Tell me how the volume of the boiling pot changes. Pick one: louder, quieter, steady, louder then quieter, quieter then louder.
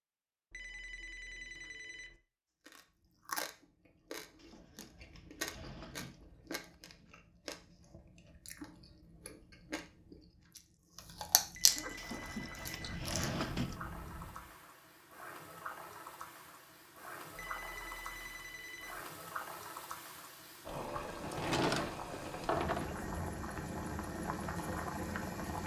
louder.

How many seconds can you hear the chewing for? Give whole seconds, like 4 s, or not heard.
12 s.